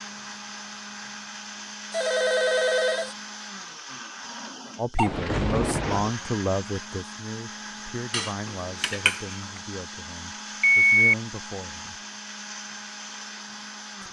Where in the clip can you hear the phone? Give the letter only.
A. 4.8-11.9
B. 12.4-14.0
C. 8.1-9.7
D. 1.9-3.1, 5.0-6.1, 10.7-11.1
D.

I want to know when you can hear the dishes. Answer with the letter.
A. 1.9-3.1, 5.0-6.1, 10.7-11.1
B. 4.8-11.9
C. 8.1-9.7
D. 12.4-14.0
C.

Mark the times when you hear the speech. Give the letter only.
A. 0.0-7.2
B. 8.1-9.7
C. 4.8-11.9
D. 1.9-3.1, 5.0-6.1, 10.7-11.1
C.